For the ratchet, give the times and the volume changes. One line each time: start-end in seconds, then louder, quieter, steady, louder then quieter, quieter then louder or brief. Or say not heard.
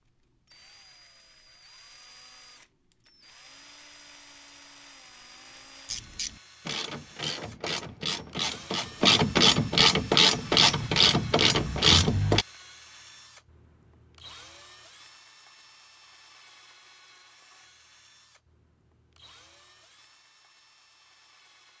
5.8-12.4 louder.